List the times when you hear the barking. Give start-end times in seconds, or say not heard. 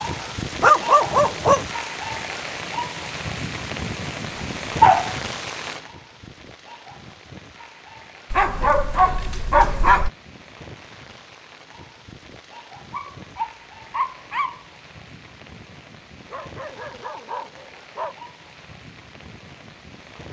0.2-1.6, 4.3-5.2, 8.3-10.1, 12.9-14.6, 16.3-18.1.